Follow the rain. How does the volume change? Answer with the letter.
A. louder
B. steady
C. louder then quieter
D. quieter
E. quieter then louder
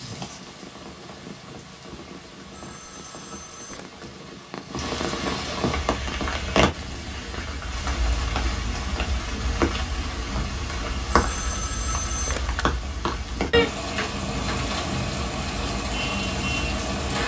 A.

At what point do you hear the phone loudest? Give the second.
12 s.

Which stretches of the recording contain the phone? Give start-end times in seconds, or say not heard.
2.5-4.0, 11.1-12.7.